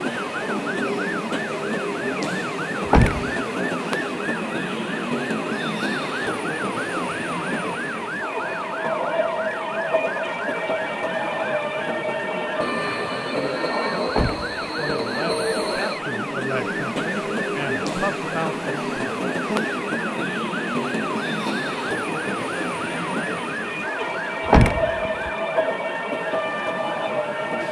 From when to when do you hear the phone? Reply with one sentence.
The phone can't be heard in this clip.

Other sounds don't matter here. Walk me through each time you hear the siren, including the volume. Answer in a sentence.
You can hear the siren from 0.0 to 27.6 s, at a steady volume.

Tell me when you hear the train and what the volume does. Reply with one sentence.
The train can be heard from 0.0 to 27.6 s, at a steady volume.